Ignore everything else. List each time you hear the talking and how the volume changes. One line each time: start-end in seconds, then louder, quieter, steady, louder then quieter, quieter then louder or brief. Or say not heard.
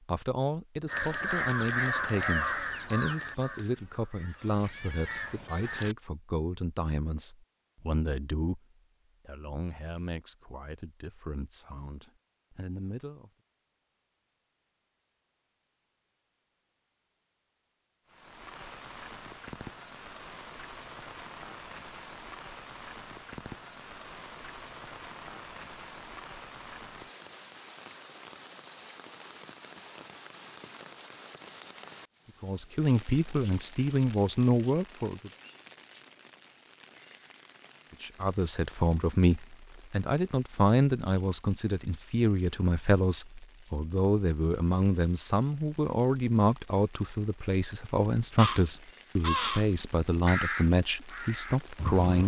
0.1-13.3 quieter
32.4-35.3 brief
38.0-52.2 steady.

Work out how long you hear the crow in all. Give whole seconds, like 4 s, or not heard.
9 s.